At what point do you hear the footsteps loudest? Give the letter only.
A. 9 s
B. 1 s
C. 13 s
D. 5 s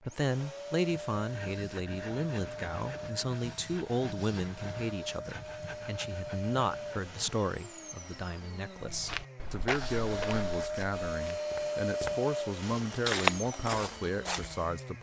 C.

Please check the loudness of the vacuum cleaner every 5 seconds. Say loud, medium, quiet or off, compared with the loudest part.
medium, medium, loud.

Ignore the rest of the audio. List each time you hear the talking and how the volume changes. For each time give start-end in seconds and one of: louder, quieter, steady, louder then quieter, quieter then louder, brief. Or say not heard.
0.0-14.9 steady.